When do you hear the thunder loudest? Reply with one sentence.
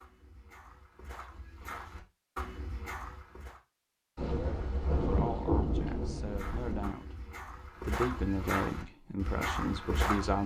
The volume of the thunder peaks at 6 seconds.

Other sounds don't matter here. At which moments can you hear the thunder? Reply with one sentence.
The thunder can be heard from 4.2 to 6.9 s.